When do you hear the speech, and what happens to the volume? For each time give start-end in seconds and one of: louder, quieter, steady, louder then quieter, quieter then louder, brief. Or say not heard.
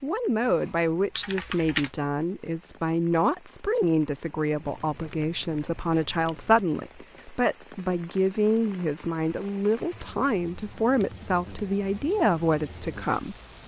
0.0-13.3 steady.